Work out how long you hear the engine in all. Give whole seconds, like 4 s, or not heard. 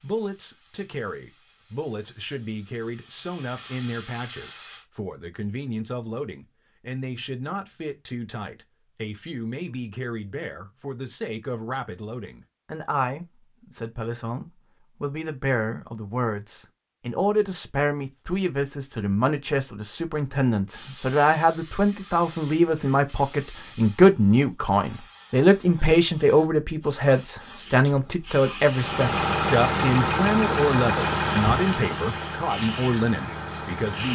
5 s.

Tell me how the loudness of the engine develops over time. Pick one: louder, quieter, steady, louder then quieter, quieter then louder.
quieter.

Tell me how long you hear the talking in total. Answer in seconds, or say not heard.
34 s.